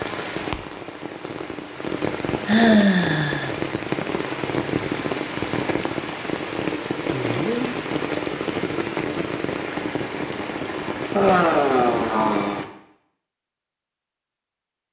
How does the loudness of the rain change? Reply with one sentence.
The volume of the rain stays about the same.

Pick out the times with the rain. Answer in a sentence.
You can hear the rain from 0.0 to 12.7 s.